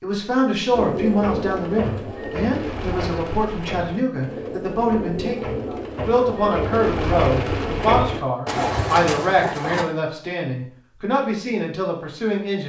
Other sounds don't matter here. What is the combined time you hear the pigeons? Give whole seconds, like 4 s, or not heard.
9 s.